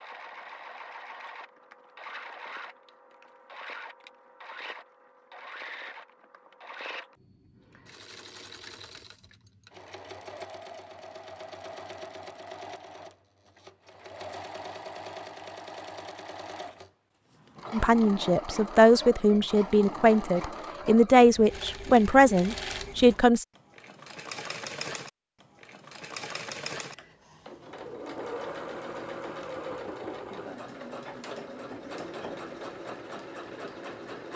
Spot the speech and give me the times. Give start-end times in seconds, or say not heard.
17.7-23.4.